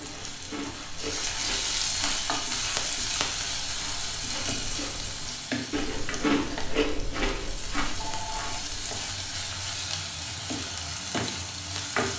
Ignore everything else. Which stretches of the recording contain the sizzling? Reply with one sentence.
You can hear the sizzling from 0.0 to 12.1 s.